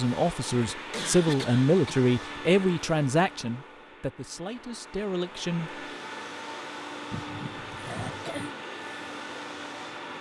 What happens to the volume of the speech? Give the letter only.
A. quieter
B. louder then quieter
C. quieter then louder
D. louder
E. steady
A.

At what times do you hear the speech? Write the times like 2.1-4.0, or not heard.
0.0-5.7.